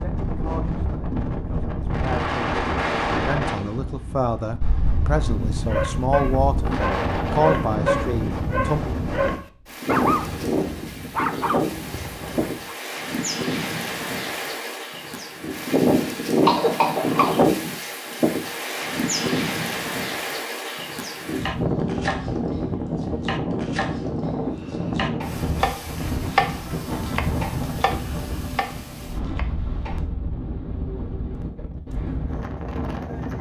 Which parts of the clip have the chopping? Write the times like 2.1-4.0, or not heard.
21.4-24.1, 24.7-30.0.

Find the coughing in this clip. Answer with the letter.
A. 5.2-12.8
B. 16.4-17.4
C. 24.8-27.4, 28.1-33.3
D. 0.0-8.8
B.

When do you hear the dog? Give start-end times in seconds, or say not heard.
5.2-12.8.